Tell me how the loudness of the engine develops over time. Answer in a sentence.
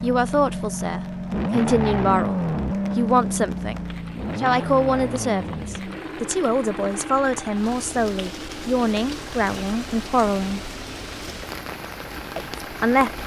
The loudness of the engine goes down.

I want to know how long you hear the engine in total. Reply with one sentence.
You can hear the engine for 13 seconds altogether.